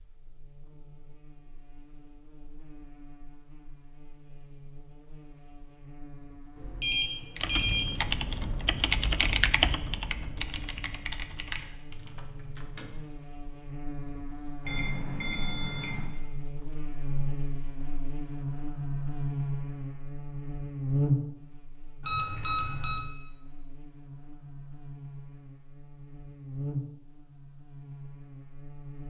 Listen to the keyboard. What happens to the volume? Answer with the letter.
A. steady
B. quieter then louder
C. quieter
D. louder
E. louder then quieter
E.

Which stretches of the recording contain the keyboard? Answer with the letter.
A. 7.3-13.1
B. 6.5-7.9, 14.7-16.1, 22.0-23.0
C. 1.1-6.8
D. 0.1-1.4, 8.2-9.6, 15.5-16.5
A.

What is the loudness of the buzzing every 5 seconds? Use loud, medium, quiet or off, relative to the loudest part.
quiet, quiet, medium, loud, loud, medium.